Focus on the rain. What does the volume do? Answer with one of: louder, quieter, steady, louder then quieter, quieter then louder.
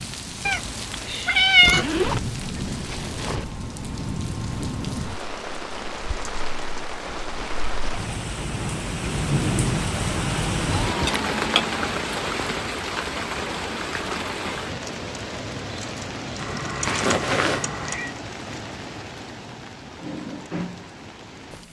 louder then quieter.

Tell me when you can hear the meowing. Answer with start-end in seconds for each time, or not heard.
0.5-2.0, 10.6-11.9, 16.4-18.1.